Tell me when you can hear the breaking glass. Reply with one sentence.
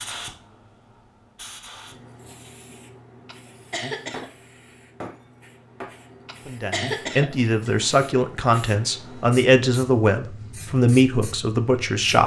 The breaking glass can be heard from 4.1 to 6.0 s.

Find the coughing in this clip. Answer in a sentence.
You can hear the coughing from 3.2 to 4.3 s and from 6.2 to 7.9 s.